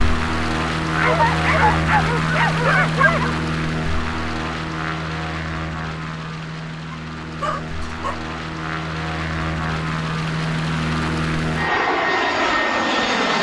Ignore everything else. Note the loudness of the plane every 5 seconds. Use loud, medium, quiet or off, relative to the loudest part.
loud, medium, loud.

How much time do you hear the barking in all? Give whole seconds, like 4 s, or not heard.
4 s.